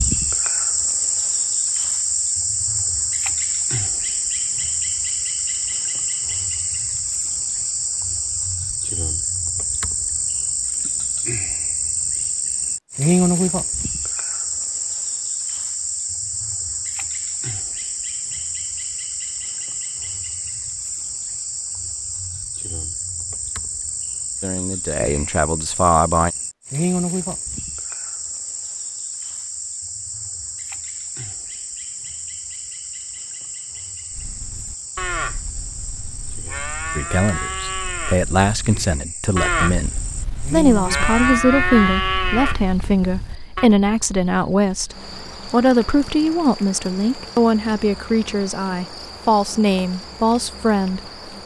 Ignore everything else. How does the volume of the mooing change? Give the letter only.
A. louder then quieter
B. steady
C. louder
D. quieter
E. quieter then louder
C.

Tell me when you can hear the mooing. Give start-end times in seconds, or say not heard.
34.1-43.7.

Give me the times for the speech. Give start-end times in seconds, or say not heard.
24.4-26.4, 37.0-51.4.